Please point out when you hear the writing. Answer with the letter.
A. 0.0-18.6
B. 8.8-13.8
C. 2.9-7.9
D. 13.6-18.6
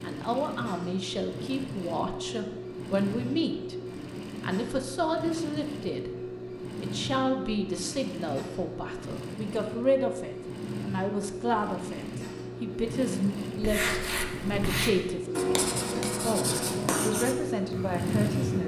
D.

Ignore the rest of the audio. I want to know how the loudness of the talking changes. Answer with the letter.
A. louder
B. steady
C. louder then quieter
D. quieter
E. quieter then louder
B.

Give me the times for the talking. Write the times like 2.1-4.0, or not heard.
0.0-18.6.